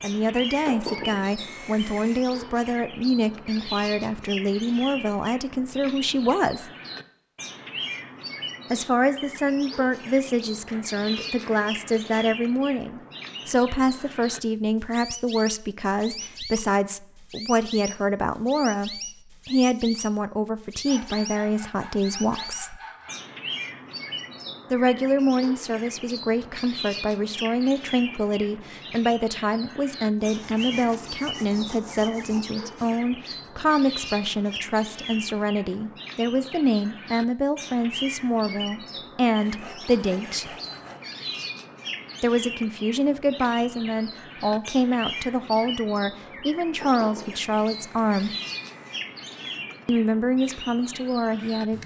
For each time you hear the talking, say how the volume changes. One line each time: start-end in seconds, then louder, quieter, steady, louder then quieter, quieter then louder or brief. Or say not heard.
0.0-6.7 steady
8.7-22.8 steady
24.7-40.5 steady
42.2-48.3 steady
49.9-51.8 brief.